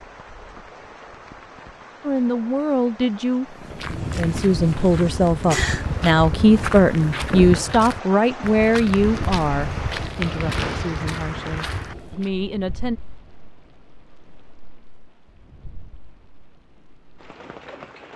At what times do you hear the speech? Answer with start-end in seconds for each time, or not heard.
2.0-13.0.